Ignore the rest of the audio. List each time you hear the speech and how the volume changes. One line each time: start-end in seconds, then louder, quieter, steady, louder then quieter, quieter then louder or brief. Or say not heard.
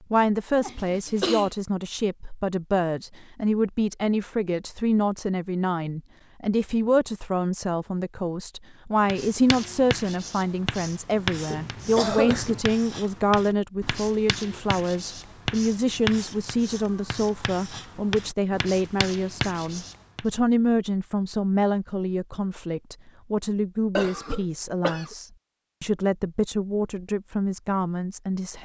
0.1-28.6 steady.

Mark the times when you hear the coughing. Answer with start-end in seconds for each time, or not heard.
0.6-1.5, 11.4-12.6, 23.9-25.1.